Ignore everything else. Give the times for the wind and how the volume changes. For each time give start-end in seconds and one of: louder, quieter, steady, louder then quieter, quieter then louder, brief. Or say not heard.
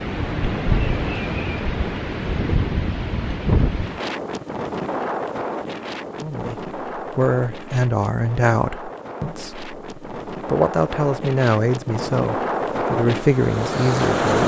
0.0-14.4 quieter then louder.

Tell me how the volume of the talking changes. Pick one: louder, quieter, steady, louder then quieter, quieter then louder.
steady.